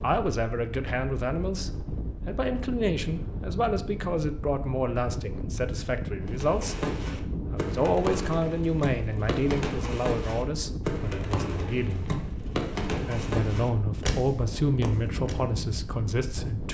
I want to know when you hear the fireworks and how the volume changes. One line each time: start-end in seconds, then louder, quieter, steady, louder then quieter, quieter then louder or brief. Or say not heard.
6.2-15.3 steady.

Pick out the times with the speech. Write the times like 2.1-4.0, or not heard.
0.0-12.2, 12.9-16.6.